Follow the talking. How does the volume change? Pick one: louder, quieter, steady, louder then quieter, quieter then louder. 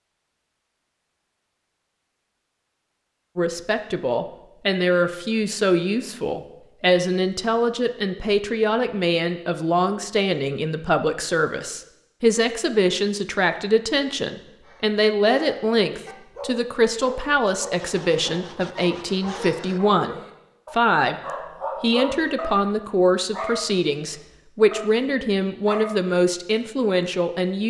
steady.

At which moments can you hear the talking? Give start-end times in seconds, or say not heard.
3.4-27.6.